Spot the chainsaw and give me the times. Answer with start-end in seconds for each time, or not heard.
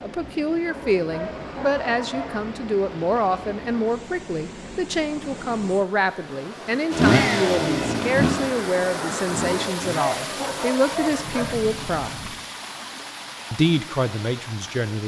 6.9-10.7.